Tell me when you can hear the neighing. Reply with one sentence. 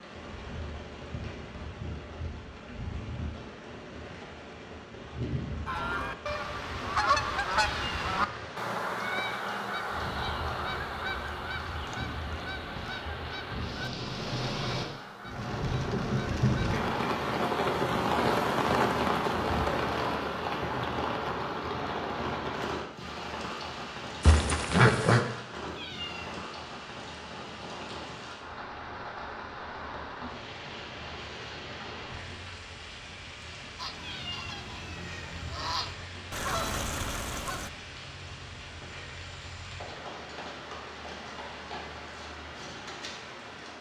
The neighing can be heard from 24.2 to 25.2 s.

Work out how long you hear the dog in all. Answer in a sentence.
The dog can't be heard in this clip.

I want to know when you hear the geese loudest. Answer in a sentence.
The loudest moment of the geese is at 7 seconds.